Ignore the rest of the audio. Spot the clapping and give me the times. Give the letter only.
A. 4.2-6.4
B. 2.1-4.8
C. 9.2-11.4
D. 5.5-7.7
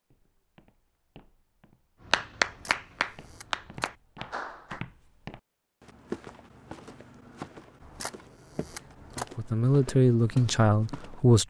B.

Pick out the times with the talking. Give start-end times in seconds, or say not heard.
9.2-11.4.